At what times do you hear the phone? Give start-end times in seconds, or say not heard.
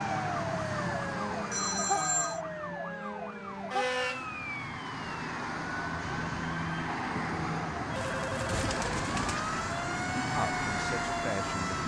1.5-2.4, 7.8-8.7.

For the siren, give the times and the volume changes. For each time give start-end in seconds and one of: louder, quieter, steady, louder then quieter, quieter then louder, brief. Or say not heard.
0.0-11.8 quieter then louder.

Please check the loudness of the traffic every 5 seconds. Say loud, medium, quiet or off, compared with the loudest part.
medium, loud, loud.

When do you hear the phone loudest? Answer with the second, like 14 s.
2 s.